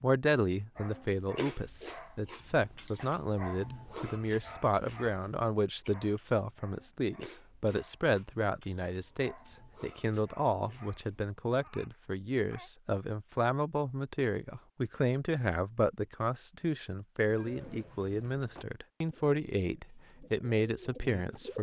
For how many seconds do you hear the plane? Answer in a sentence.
You can't hear the plane here.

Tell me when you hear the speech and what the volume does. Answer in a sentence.
The speech can be heard from 0.0 to 21.5 s, at a steady volume.